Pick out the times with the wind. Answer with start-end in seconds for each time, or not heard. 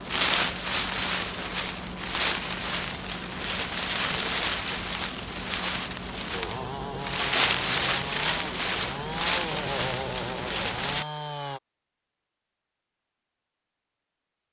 0.0-11.1.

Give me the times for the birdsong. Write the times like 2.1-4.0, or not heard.
not heard.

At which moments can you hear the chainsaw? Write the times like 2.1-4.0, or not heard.
6.3-11.6.